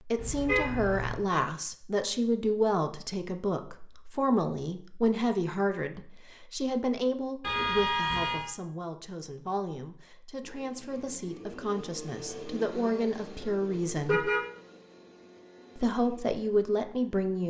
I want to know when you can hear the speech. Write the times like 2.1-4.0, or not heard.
0.1-14.3, 15.8-17.4.